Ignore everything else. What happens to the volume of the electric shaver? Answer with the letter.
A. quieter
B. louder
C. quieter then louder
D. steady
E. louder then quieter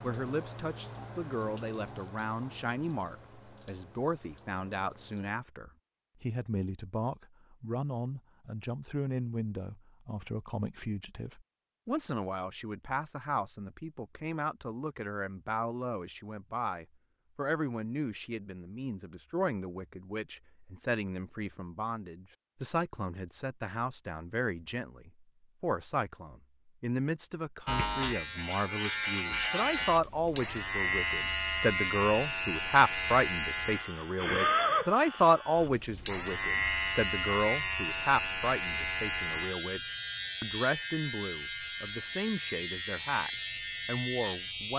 D.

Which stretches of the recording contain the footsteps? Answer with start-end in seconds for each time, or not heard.
not heard.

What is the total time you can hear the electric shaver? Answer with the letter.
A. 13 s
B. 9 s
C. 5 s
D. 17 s
D.